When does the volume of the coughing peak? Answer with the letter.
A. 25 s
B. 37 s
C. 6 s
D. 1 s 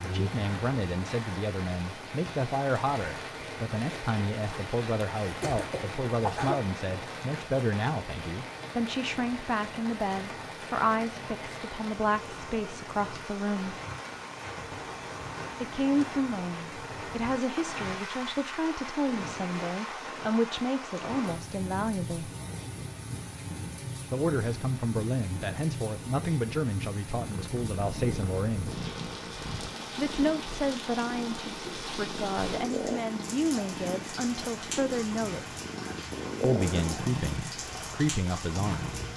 C.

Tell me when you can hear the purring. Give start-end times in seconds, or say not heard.
27.2-39.1.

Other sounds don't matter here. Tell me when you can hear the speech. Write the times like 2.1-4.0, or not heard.
0.0-13.8, 15.6-22.3, 24.1-28.8, 29.9-35.6, 36.4-39.0.